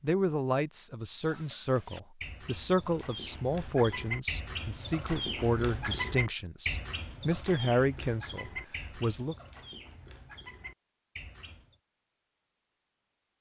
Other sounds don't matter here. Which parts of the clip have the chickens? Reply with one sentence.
The chickens can be heard from 1.1 to 11.8 s.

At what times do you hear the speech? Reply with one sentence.
The speech can be heard from 0.0 to 9.3 s.